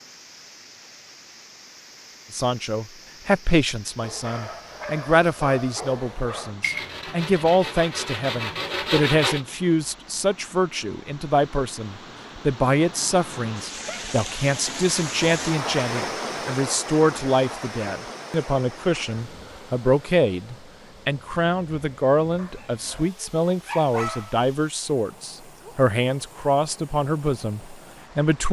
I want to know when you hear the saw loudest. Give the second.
9 s.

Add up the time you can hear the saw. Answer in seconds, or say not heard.
3 s.